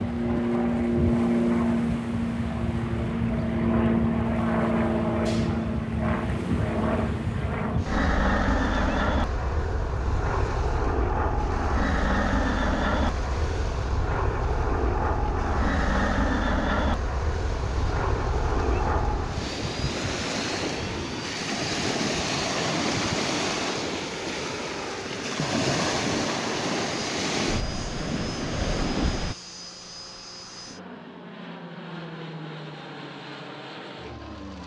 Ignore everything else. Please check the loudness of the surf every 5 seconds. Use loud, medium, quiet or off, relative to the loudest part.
quiet, quiet, quiet, medium, loud, loud, off.